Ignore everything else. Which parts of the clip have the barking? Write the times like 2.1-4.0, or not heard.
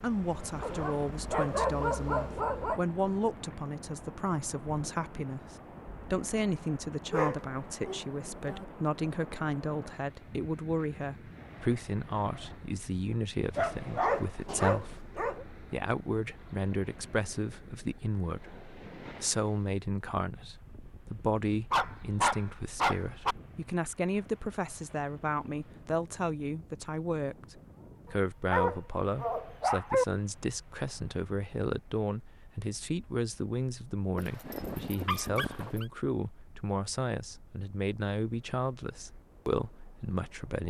0.6-2.8, 7.1-8.7, 13.6-15.4, 21.7-23.4, 28.5-30.1, 34.1-35.9.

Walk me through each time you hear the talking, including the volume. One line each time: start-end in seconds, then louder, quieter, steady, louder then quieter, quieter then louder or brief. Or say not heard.
0.0-40.6 steady.